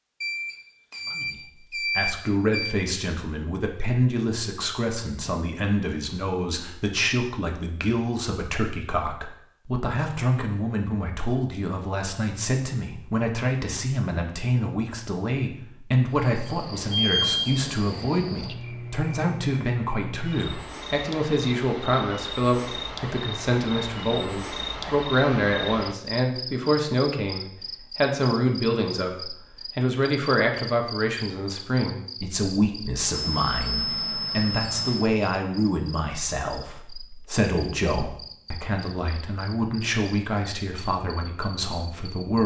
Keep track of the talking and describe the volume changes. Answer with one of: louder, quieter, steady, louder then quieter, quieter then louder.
steady.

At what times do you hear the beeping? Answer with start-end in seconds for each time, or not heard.
0.2-2.8, 16.4-17.4, 33.1-35.1.